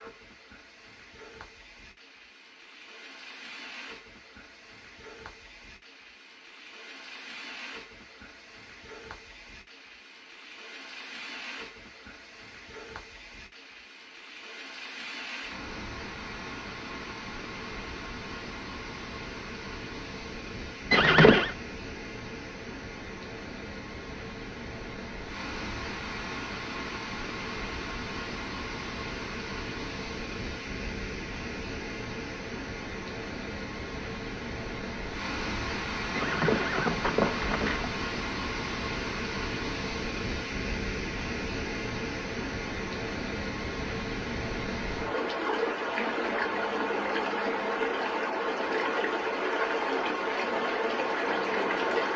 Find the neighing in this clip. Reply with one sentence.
You can hear the neighing from 20.9 to 21.6 s and from 36.1 to 37.9 s.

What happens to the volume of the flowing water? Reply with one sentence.
The loudness of the flowing water goes up.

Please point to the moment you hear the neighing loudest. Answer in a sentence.
The loudest moment of the neighing is at 21 seconds.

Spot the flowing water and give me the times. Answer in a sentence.
The flowing water can be heard from 0.0 to 52.1 s.